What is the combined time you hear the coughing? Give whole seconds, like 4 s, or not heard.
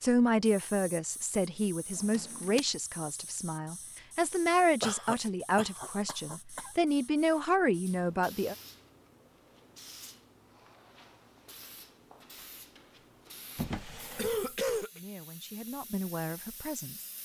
3 s.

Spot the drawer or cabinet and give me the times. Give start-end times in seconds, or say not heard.
1.9-2.6, 13.6-14.6.